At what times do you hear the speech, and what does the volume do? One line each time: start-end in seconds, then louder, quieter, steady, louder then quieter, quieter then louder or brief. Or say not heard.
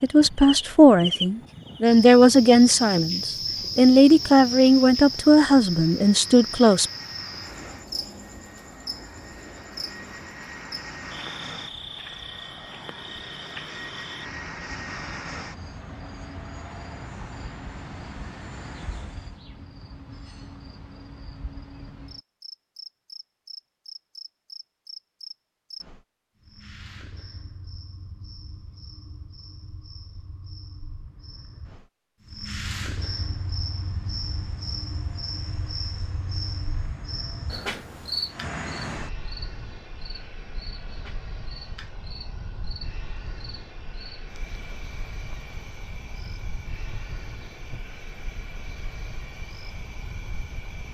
0.0-6.8 steady.